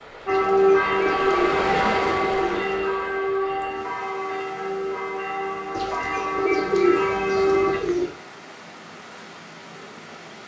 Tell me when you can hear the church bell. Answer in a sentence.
You can hear the church bell from 0.2 to 7.8 s.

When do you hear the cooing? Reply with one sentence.
You can hear the cooing from 0.2 to 2.7 s and from 5.7 to 8.1 s.